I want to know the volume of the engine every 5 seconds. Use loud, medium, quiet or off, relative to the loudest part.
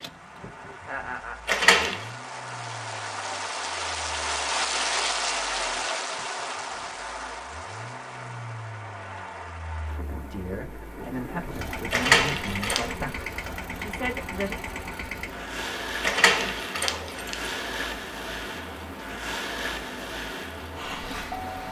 quiet, quiet, loud, loud, loud.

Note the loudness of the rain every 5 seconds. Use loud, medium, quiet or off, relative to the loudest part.
loud, loud, medium, medium, medium.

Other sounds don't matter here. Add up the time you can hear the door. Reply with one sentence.
You can hear the door for 3 seconds altogether.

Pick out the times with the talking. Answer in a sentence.
The talking can be heard from 10.1 to 14.6 s.